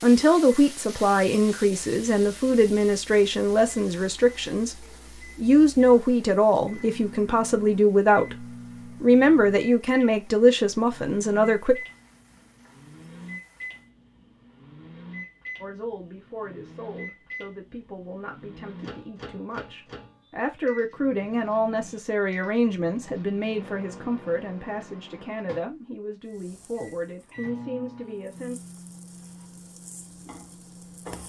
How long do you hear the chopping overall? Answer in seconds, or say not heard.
not heard.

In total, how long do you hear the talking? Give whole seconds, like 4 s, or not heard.
25 s.